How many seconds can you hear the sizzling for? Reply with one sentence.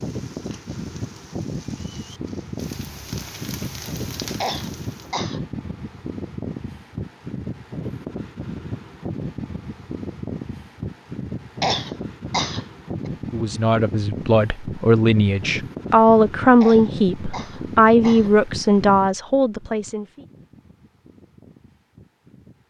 The sizzling can be heard for 5 seconds in total.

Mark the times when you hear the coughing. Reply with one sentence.
You can hear the coughing from 4.4 to 5.4 s, from 11.6 to 13.1 s and from 16.6 to 18.4 s.